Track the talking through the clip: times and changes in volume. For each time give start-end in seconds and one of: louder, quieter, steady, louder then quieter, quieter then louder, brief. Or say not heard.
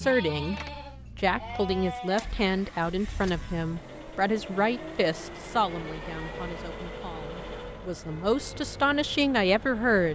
0.0-10.1 quieter then louder.